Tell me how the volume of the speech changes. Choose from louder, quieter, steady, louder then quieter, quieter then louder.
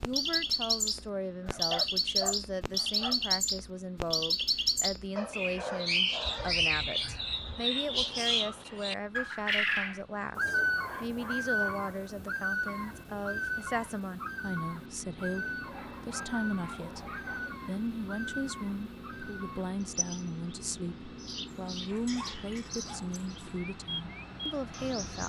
steady.